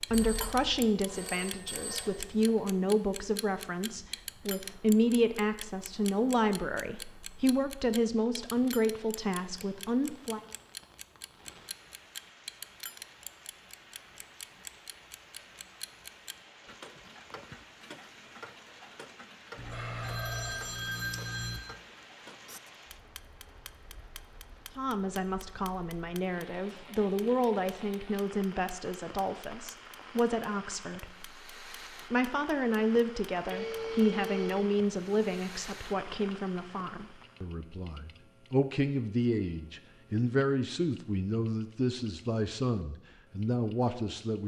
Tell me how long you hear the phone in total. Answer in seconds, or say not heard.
6 s.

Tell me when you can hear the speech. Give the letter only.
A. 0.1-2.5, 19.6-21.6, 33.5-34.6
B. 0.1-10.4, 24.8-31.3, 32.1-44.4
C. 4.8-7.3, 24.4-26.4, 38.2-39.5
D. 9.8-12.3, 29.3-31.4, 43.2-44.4
B.